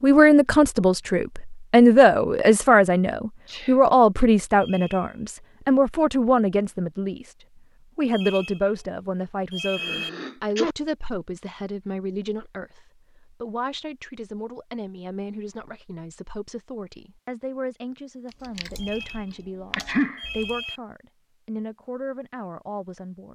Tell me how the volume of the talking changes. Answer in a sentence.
The volume of the talking goes down.